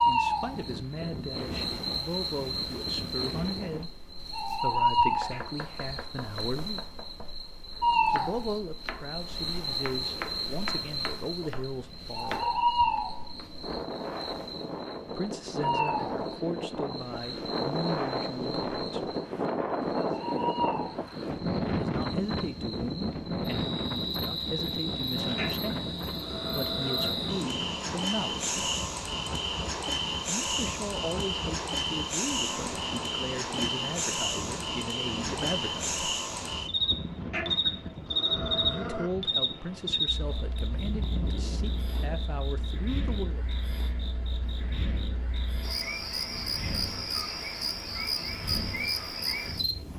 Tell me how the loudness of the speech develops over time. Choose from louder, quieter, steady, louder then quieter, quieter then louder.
steady.